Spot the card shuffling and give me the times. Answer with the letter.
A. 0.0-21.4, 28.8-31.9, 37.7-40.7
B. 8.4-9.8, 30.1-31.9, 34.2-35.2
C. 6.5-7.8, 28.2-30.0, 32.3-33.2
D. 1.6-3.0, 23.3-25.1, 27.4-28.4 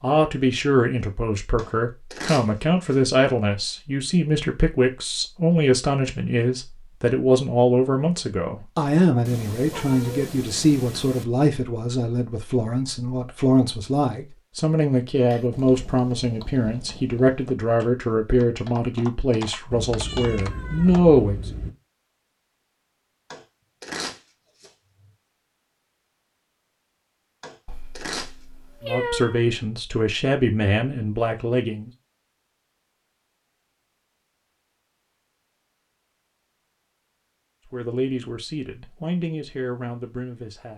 D.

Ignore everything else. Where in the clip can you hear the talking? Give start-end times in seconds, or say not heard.
0.0-21.4, 28.8-31.9, 37.7-40.7.